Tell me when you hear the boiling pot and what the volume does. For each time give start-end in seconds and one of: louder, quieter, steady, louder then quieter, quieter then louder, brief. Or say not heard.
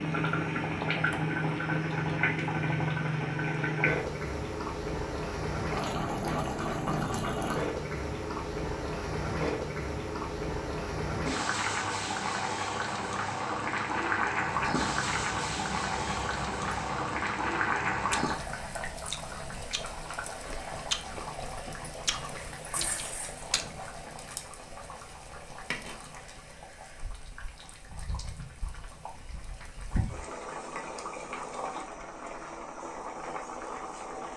0.0-34.3 quieter.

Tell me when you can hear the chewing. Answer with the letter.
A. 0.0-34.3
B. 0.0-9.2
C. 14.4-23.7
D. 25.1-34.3
C.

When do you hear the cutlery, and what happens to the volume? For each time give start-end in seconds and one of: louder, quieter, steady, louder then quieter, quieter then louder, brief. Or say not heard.
not heard.